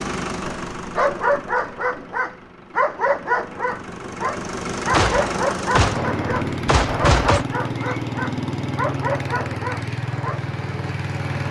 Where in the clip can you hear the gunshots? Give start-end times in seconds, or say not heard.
4.9-7.5.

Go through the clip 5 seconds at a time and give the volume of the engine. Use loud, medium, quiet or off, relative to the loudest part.
medium, loud, loud.